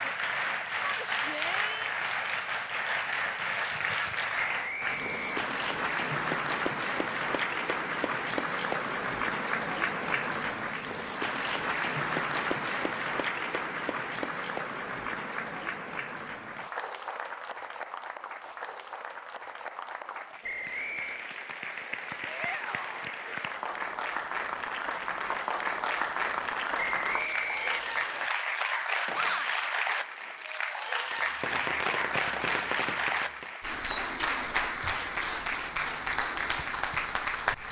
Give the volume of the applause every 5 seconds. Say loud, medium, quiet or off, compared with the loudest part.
loud, loud, loud, medium, medium, loud, loud, loud.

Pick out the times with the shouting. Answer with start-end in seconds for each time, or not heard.
0.8-1.9, 22.2-23.1, 29.1-29.6.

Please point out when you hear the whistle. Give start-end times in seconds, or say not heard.
4.3-5.3, 20.4-21.2, 26.8-28.3.